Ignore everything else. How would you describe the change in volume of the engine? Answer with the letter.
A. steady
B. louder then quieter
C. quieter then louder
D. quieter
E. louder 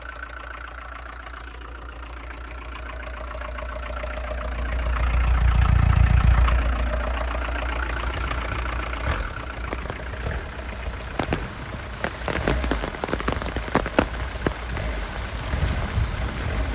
B.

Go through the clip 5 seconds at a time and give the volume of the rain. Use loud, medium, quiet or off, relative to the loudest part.
off, medium, loud, loud.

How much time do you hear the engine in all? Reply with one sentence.
The engine can be heard for 17 seconds in total.